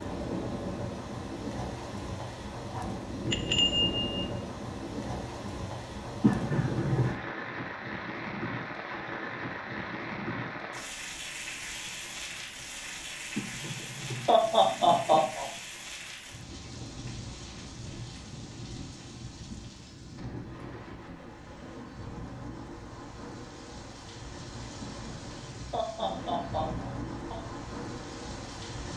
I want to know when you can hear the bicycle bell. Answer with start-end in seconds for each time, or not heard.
3.3-4.3.